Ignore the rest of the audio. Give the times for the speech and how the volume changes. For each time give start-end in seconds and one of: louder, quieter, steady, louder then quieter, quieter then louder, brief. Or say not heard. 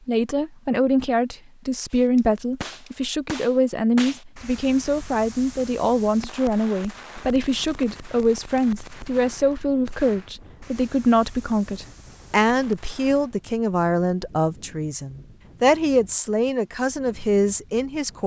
0.1-18.2 steady.